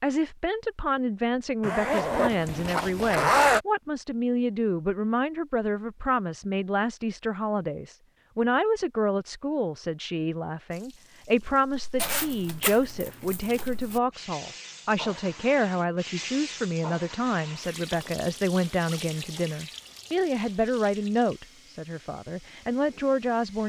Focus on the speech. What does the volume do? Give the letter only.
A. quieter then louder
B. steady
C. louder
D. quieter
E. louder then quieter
B.